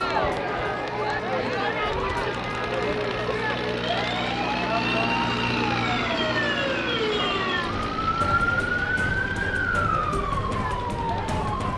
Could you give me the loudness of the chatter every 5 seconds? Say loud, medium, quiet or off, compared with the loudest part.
loud, medium, medium.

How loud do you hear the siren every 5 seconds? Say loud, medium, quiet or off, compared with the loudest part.
medium, loud, loud.